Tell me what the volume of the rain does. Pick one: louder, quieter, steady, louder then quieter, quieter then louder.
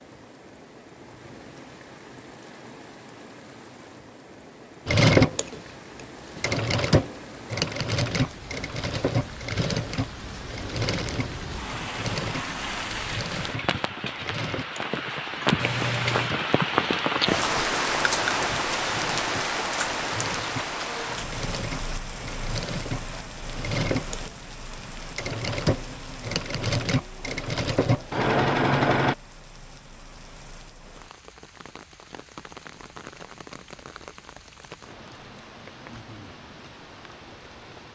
louder then quieter.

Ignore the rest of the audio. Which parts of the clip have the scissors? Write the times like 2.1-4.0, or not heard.
15.6-16.4.